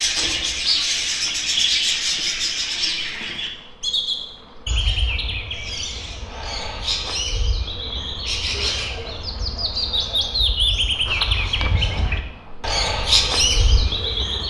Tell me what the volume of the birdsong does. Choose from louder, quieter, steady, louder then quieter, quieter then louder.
quieter then louder.